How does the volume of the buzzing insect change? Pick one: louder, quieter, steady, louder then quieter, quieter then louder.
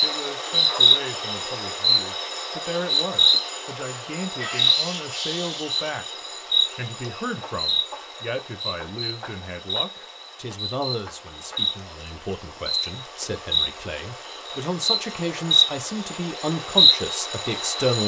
quieter then louder.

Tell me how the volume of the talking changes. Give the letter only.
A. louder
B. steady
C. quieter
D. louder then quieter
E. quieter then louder
A.